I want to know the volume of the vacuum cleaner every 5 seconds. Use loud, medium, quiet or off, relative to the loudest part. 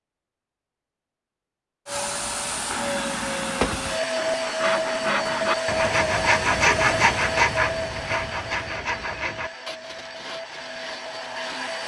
loud, loud, medium.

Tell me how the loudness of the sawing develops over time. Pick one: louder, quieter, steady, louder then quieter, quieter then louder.
louder then quieter.